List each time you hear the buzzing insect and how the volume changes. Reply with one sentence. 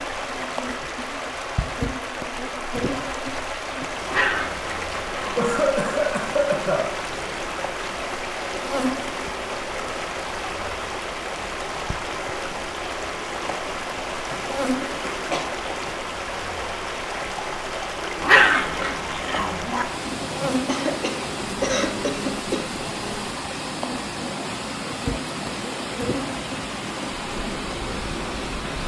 You can hear the buzzing insect from 0.0 to 28.8 s, at a steady volume.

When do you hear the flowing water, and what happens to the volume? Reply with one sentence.
You can hear the flowing water from 0.0 to 28.8 s, at a steady volume.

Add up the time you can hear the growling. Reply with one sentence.
The growling can be heard for 3 seconds in total.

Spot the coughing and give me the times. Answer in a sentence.
The coughing can be heard from 5.3 to 6.9 s, from 14.3 to 15.4 s and from 20.6 to 22.7 s.